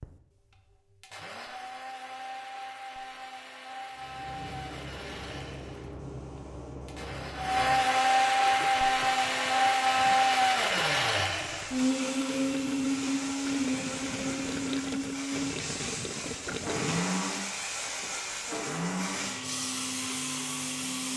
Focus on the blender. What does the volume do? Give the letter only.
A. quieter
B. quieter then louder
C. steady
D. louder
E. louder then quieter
E.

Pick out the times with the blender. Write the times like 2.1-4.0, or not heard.
0.0-21.1.